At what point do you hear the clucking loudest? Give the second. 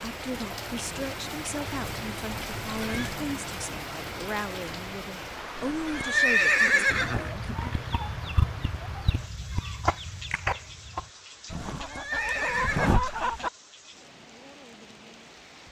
13 s.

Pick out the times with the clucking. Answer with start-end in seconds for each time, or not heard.
6.9-13.5.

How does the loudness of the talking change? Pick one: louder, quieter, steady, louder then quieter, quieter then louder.
steady.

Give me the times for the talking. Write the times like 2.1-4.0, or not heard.
0.0-7.5.